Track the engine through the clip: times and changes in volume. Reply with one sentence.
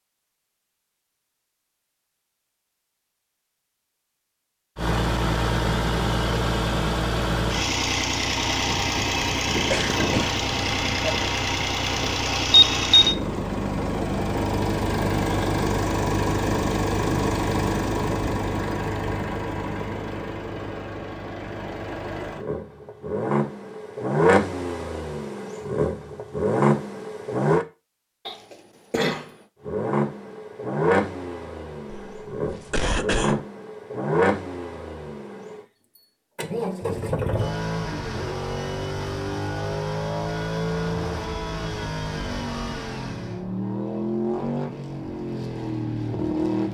The engine can be heard from 4.8 to 27.6 s, getting quieter then louder; and from 29.6 to 46.6 s, at a steady volume.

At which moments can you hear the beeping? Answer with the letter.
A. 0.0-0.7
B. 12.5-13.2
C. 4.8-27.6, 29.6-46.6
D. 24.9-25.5
B.